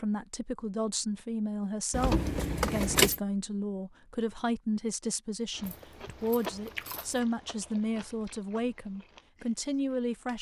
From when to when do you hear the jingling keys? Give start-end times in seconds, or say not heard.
1.9-3.2, 5.6-7.2.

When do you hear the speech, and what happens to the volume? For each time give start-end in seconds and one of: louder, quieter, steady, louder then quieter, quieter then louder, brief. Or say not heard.
0.0-10.3 steady.